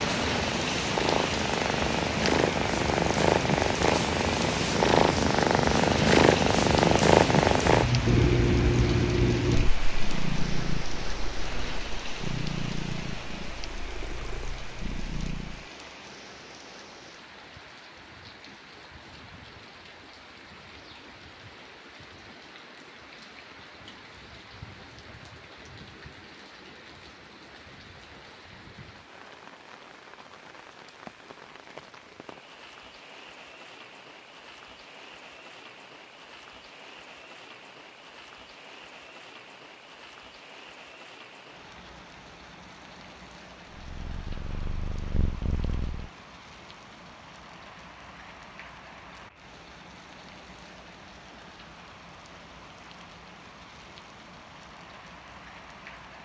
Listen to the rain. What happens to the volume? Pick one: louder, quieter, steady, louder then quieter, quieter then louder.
quieter.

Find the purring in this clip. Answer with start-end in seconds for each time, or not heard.
0.0-15.7, 43.7-46.0.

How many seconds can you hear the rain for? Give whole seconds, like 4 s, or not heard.
56 s.